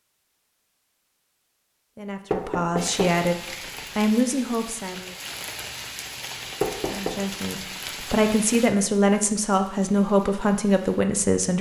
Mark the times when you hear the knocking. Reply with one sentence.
You can hear the knocking from 2.3 to 3.2 s and from 6.6 to 7.2 s.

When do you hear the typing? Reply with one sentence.
The typing can't be heard in this clip.